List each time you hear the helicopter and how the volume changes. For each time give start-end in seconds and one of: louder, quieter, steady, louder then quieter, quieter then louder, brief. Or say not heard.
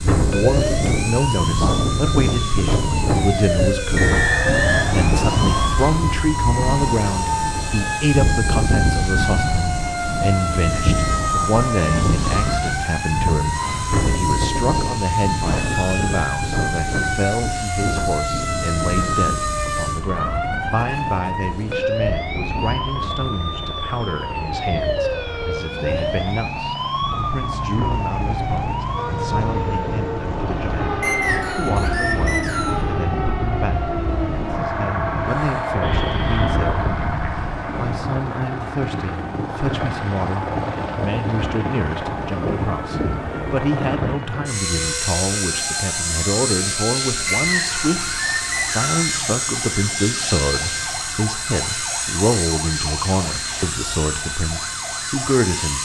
0.0-55.7 louder.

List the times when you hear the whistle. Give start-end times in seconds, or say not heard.
4.0-5.7, 31.0-32.8, 47.2-49.0.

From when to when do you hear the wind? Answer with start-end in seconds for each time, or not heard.
0.0-38.1.